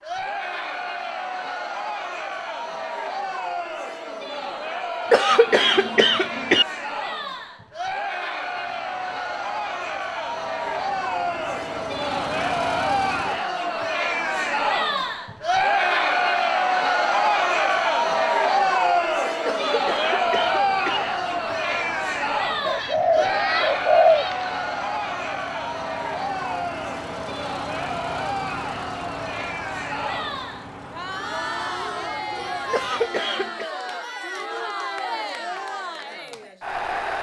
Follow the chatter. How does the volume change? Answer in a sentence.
The volume of the chatter goes up, then down.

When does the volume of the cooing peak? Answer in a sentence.
The loudest moment of the cooing is at 24 seconds.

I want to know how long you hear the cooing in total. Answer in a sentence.
You can hear the cooing for 2 seconds altogether.